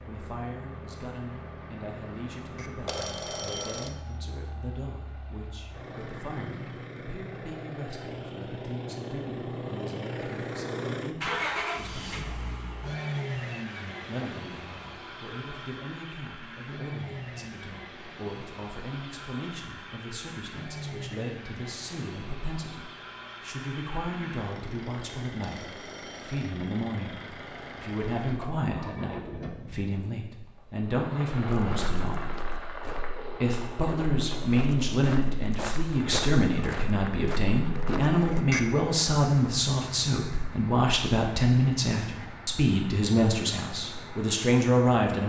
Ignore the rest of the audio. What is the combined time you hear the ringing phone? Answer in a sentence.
The ringing phone can be heard for 3 seconds in total.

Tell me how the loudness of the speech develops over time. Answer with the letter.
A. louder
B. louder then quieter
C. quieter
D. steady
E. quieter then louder
A.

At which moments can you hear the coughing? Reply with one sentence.
The coughing can't be heard in this clip.